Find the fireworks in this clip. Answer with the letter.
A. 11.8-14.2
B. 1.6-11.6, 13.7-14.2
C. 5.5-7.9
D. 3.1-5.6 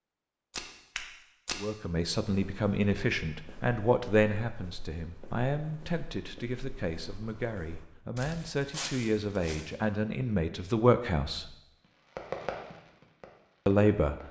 A.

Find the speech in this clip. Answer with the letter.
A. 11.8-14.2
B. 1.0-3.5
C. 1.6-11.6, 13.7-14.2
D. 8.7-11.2
C.